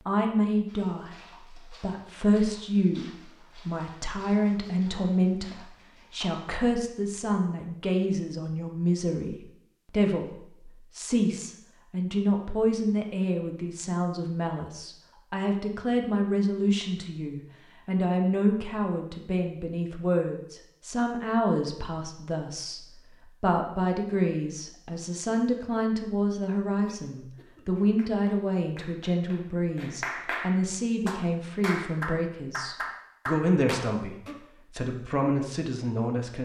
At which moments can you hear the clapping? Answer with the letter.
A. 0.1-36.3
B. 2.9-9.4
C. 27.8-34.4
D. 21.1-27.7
C.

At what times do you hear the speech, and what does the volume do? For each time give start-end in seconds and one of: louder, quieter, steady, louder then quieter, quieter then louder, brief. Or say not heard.
0.1-36.3 steady.